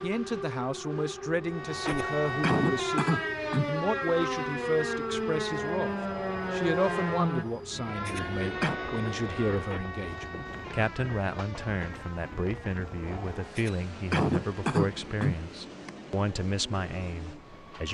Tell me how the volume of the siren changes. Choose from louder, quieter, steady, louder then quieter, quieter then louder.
quieter.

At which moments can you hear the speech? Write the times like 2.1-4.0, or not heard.
0.0-17.8.